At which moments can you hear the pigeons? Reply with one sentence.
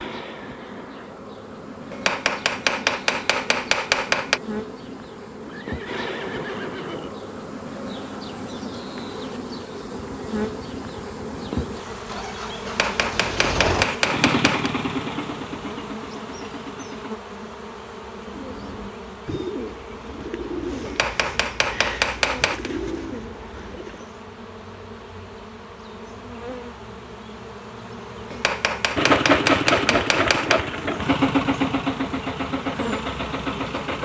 You can hear the pigeons from 18.2 to 24.2 s.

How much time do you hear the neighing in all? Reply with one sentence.
The neighing can be heard for 2 seconds in total.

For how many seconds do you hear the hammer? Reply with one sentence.
The hammer can be heard for 9 seconds in total.